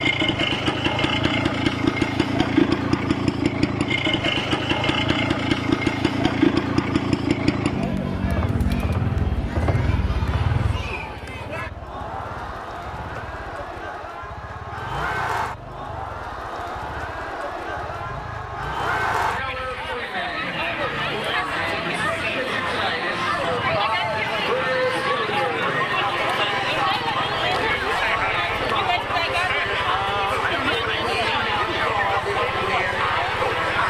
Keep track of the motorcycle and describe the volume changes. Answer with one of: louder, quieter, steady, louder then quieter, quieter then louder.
quieter.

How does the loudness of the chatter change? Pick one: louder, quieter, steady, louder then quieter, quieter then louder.
louder.